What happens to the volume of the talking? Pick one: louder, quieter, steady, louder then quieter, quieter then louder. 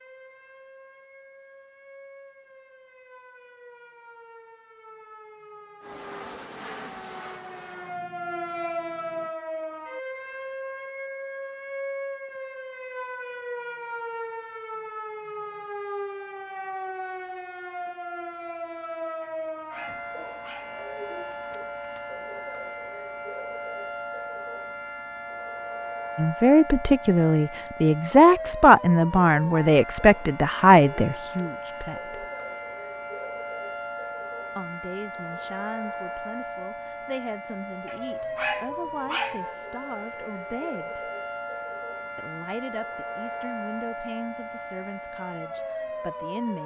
quieter.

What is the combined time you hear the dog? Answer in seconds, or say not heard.
3 s.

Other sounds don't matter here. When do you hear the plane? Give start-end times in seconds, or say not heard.
5.8-9.3.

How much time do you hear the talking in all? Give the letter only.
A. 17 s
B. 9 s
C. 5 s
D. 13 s
A.